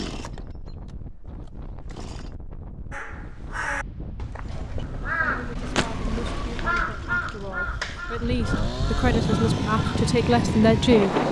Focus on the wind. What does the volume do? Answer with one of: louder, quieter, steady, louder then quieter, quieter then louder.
louder.